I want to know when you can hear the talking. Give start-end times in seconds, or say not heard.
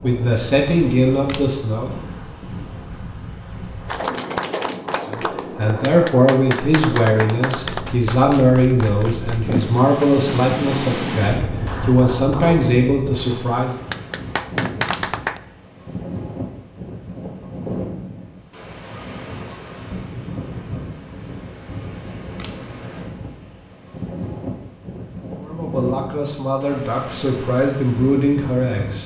0.0-1.9, 5.1-13.8, 25.4-29.0.